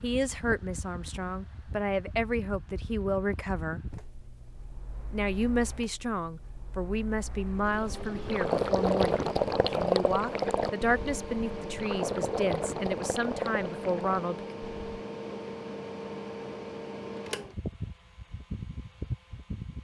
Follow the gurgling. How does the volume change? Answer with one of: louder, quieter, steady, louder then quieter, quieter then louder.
quieter.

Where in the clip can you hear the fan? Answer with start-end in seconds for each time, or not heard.
0.0-19.7.